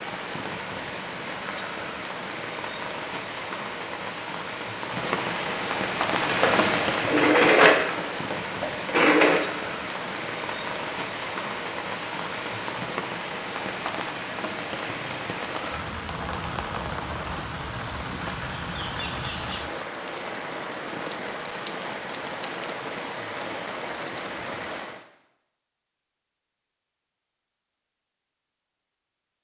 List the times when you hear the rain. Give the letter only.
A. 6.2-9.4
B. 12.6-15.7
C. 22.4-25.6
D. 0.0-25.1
D.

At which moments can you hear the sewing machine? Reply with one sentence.
You can hear the sewing machine from 6.2 to 9.4 s.